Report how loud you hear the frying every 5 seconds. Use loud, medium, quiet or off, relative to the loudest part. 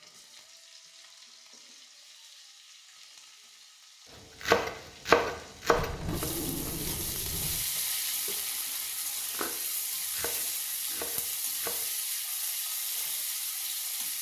quiet, loud, loud.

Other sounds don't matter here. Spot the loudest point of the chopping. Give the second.
5 s.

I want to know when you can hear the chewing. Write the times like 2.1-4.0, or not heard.
not heard.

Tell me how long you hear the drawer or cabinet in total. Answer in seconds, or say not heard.
2 s.